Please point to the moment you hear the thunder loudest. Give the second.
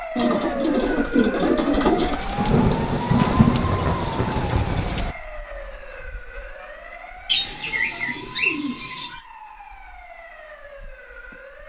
3 s.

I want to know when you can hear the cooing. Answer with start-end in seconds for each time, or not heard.
0.1-2.1, 7.2-9.2.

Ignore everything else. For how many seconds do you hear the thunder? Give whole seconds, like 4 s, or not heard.
3 s.